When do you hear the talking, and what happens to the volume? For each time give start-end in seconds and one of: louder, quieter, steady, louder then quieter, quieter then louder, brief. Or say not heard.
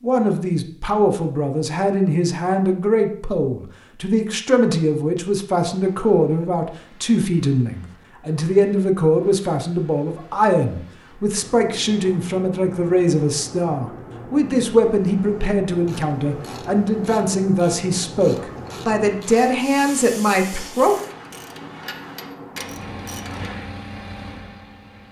0.0-20.9 steady.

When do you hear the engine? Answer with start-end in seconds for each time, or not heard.
22.6-25.0.